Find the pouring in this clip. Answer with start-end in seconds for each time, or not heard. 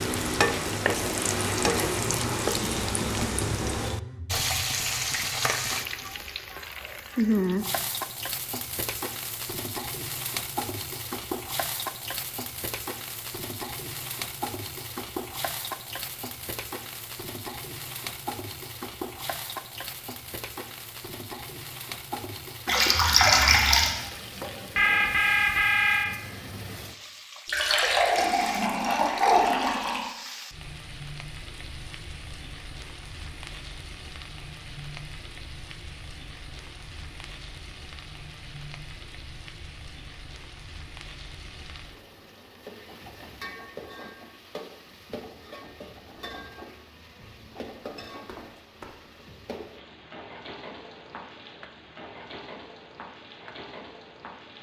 22.6-23.9, 27.4-30.1.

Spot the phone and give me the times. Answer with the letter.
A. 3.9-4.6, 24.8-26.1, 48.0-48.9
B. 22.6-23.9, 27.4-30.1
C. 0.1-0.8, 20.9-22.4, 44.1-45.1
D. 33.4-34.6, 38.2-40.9
A.